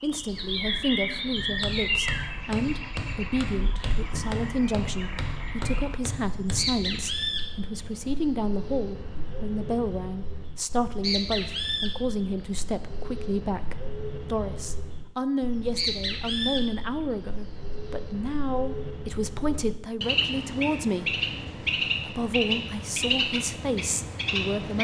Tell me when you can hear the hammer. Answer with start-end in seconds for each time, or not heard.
1.4-7.0.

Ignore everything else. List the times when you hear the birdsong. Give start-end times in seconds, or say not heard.
0.0-24.7.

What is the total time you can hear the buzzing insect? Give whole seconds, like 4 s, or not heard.
not heard.